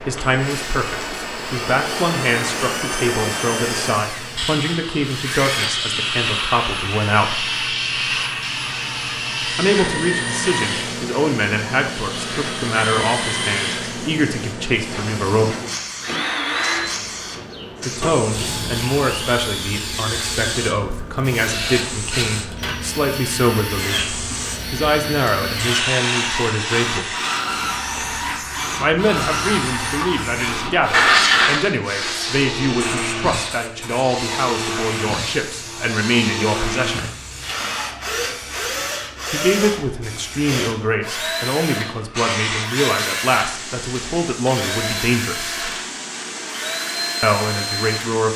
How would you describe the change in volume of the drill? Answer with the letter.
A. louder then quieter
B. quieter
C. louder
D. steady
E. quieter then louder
D.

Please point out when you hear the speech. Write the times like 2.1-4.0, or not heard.
0.1-7.5, 9.6-15.6, 17.9-27.1, 28.8-37.0, 39.3-45.6, 47.2-48.3.